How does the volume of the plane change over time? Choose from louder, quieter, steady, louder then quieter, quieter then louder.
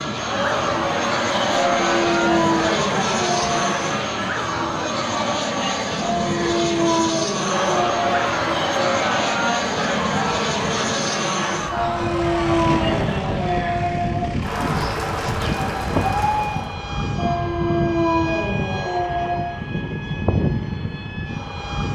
steady.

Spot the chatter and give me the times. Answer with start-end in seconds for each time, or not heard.
0.1-16.8.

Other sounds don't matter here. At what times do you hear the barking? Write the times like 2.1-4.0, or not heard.
1.7-3.6, 6.0-8.2, 11.7-14.2, 17.1-19.5.